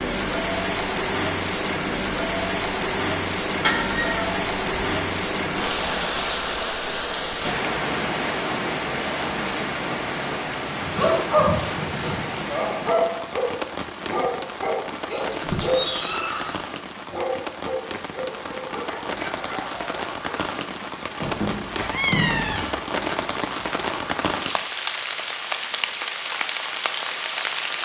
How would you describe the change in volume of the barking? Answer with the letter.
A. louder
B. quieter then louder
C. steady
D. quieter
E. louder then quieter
D.